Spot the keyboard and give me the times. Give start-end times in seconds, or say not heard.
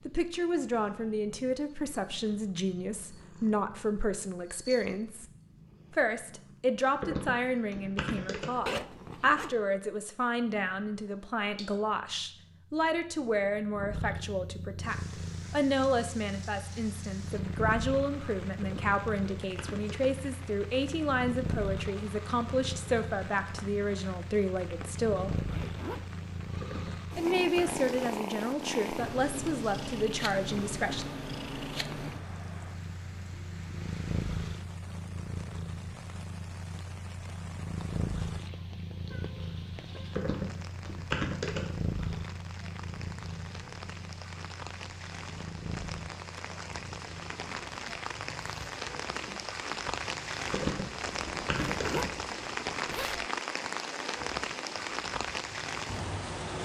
7.0-8.6, 18.6-20.2, 26.6-28.2, 40.1-41.8, 50.5-52.1.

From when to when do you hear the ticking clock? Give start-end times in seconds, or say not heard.
not heard.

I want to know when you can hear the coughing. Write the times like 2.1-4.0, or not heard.
not heard.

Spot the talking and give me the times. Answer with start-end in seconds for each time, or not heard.
0.1-5.2, 5.9-25.4, 27.1-31.1.